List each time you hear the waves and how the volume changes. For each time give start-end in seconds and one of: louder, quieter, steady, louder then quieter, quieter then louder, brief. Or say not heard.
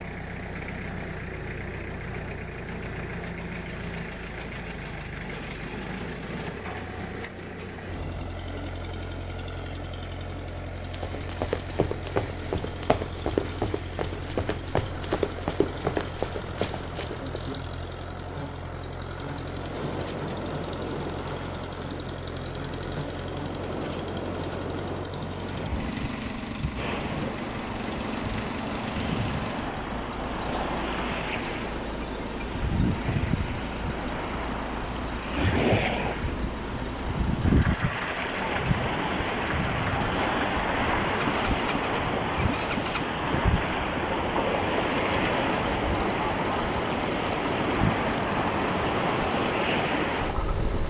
19.4-50.8 louder.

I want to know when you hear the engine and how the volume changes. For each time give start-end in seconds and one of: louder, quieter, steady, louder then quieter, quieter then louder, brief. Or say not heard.
0.0-50.8 steady.